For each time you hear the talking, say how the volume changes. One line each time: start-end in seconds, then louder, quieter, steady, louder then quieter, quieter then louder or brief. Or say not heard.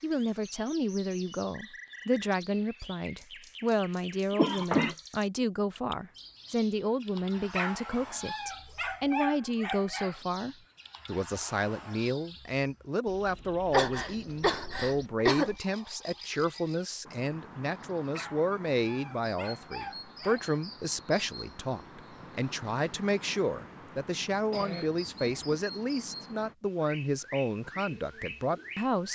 0.0-29.1 steady.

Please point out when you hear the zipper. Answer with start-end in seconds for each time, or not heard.
not heard.